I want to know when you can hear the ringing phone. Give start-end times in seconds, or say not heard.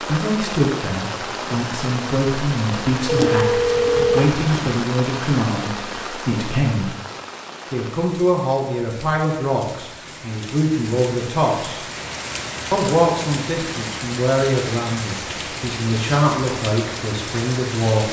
3.0-4.8.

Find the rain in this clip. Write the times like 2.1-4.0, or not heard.
0.0-18.0.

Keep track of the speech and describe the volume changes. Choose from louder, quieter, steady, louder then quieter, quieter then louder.
steady.